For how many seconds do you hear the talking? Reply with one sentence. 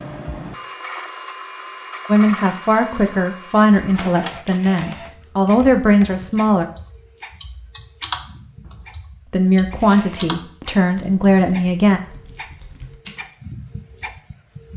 You can hear the talking for 7 seconds altogether.